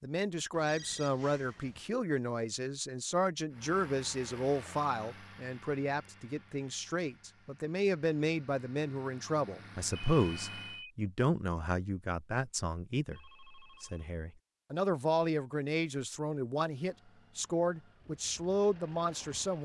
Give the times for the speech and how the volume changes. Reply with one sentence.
You can hear the speech from 0.0 to 19.5 s, at a steady volume.